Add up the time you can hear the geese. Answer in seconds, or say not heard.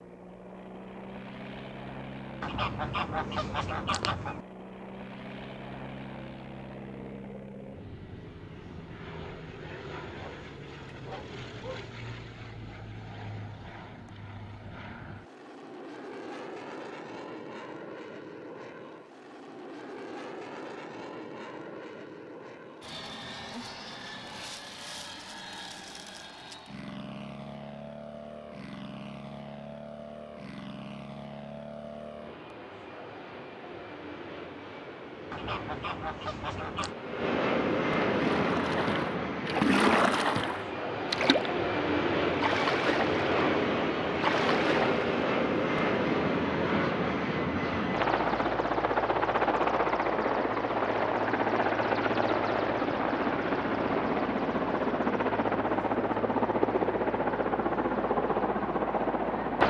4 s.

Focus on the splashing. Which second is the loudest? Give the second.
40 s.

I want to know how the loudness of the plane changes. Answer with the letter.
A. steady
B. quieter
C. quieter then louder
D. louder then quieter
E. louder
E.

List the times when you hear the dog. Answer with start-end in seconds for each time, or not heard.
10.2-11.8.